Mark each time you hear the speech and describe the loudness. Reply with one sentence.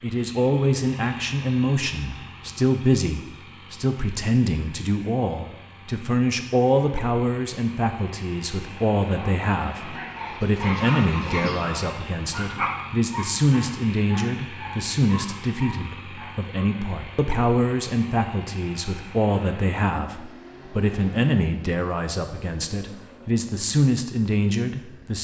You can hear the speech from 0.0 to 25.2 s, at a steady volume.